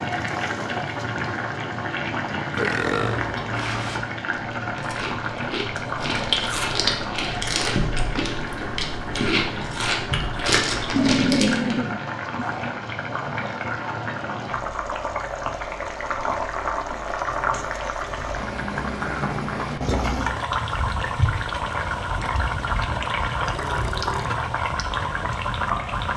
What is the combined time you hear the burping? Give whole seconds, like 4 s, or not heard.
3 s.